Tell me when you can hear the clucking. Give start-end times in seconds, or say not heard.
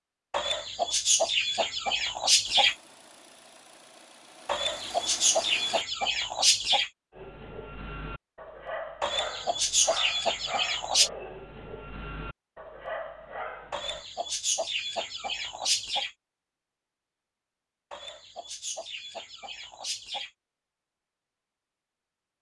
0.3-2.8, 4.5-6.9, 9.0-11.1, 13.7-16.1, 17.9-20.3.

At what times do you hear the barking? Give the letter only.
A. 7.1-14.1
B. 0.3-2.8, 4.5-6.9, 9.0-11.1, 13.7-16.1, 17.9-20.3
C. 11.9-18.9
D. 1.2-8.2
A.